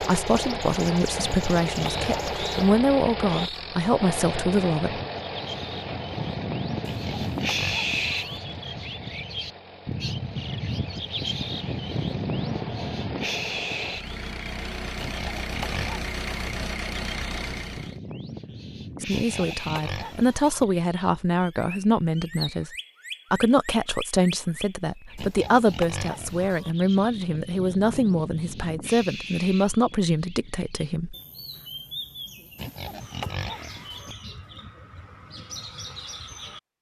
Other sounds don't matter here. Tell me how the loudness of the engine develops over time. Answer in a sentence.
The loudness of the engine goes down, then up.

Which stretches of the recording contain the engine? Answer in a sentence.
The engine can be heard from 0.0 to 18.0 s.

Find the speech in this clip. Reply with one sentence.
The speech can be heard from 0.0 to 5.0 s, from 19.0 to 22.7 s and from 23.3 to 31.1 s.